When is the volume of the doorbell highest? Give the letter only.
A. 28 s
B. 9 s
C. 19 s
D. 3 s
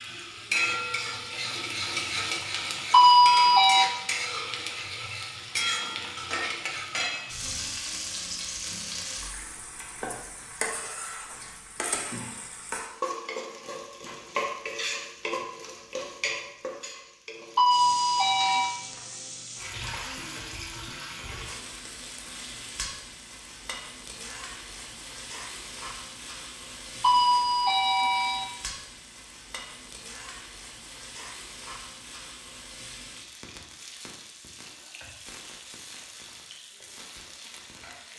D.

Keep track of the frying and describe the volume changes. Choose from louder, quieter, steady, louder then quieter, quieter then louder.
quieter.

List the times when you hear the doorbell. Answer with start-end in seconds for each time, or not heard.
2.9-3.9, 17.6-18.7, 27.0-28.4.